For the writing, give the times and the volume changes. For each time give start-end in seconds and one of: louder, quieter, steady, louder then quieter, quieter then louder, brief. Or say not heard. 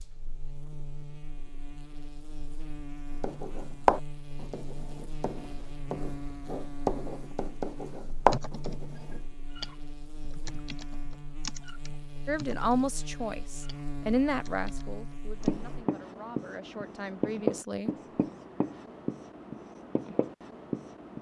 3.2-9.2 quieter then louder
15.4-21.1 louder then quieter.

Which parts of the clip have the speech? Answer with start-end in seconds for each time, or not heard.
12.2-17.9.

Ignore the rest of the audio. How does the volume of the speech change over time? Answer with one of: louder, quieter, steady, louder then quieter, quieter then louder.
quieter then louder.